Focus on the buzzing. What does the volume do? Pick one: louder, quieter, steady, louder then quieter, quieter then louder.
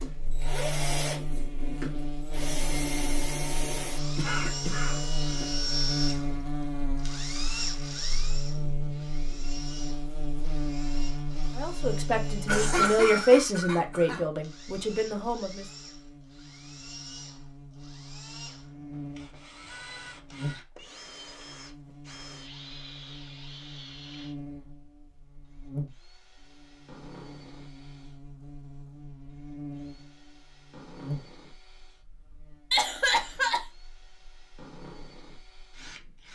quieter.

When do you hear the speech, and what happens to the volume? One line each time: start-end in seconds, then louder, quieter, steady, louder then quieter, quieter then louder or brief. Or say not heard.
11.6-15.7 louder then quieter.